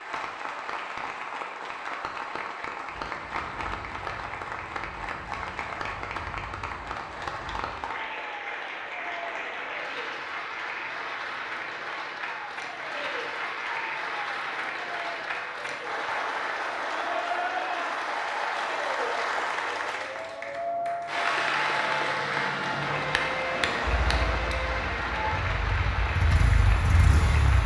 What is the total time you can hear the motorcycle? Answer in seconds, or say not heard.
4 s.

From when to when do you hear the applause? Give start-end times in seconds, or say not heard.
0.0-27.6.